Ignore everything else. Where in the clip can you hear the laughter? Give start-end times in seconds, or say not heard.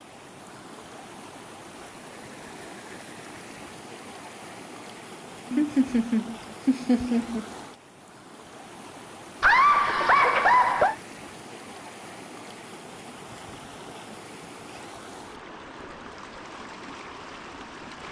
5.5-7.5, 9.4-10.9.